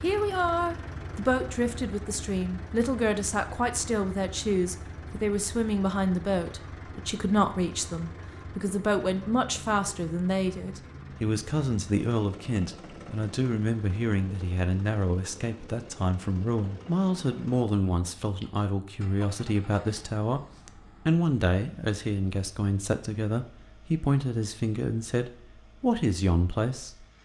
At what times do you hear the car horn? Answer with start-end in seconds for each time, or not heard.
not heard.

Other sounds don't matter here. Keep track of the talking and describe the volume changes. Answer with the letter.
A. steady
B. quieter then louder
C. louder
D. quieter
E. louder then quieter
A.